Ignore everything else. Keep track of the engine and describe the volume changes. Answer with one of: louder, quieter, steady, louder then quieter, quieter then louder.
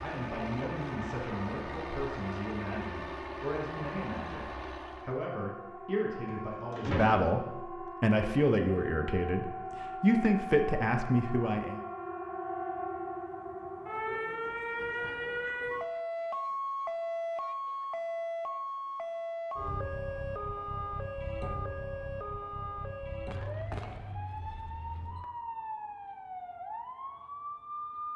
steady.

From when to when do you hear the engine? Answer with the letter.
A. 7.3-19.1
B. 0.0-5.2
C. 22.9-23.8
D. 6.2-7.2
B.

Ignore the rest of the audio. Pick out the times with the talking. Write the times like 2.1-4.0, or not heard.
0.0-11.8.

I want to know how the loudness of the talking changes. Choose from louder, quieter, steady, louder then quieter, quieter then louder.
louder.